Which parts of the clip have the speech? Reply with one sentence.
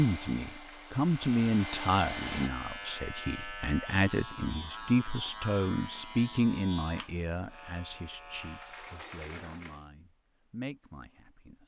You can hear the speech from 0.0 to 11.6 s.